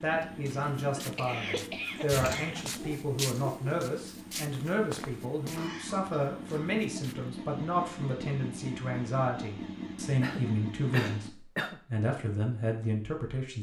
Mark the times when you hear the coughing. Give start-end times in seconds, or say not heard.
0.8-2.6, 5.5-6.8, 10.2-11.8.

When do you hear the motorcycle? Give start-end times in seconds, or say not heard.
0.0-11.3.